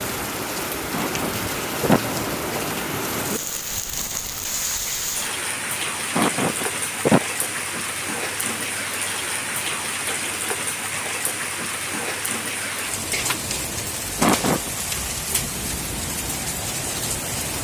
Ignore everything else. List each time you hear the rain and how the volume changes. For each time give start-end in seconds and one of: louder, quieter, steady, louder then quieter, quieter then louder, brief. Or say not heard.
0.0-17.5 steady.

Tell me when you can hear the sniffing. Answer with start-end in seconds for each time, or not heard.
0.9-2.4, 6.1-7.2, 14.2-14.7.